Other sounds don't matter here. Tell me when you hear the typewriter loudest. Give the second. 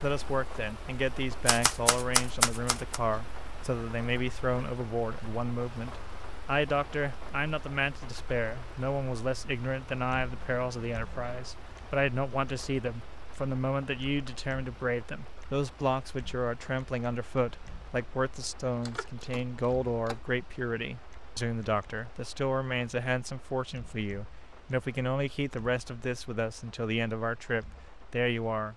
2 s.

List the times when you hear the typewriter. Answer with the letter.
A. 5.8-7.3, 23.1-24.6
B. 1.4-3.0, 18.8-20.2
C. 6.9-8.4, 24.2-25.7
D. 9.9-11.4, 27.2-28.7
B.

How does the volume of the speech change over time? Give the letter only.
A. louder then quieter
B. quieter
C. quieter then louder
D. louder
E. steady
E.